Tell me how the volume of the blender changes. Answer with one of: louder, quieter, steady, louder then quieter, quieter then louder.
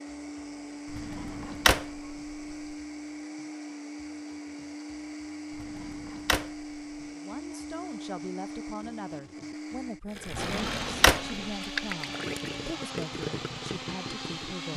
steady.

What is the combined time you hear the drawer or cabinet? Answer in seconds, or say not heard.
4 s.